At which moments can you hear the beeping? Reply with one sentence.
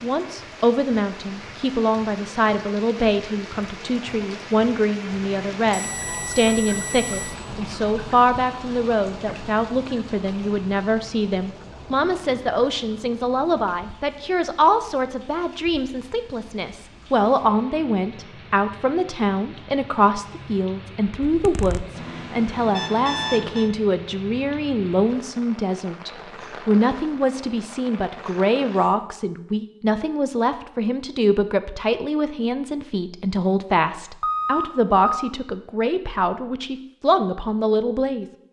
The beeping can be heard from 5.7 to 7.4 s, from 21.9 to 23.7 s and from 34.2 to 35.3 s.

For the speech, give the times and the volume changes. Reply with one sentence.
You can hear the speech from 0.0 to 38.2 s, at a steady volume.